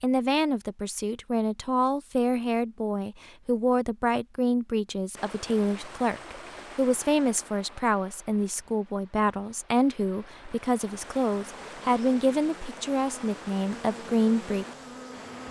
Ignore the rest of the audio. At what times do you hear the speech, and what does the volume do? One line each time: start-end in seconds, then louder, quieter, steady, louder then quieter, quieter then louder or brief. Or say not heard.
0.0-14.7 steady.